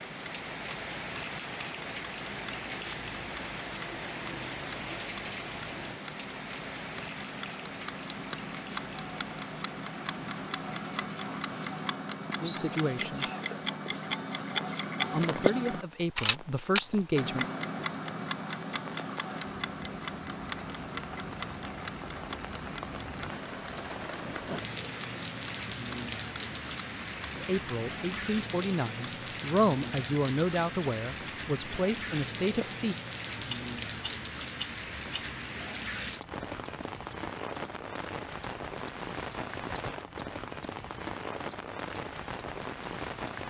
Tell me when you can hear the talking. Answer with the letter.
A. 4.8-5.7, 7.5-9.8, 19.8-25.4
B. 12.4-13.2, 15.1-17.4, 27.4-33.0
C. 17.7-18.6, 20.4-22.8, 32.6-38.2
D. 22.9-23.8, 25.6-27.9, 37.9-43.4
B.